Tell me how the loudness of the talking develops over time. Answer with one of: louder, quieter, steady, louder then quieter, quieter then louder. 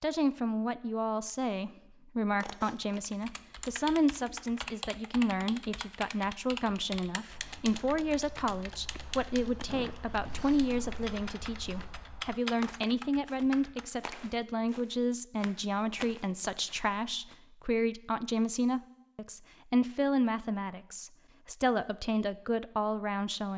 steady.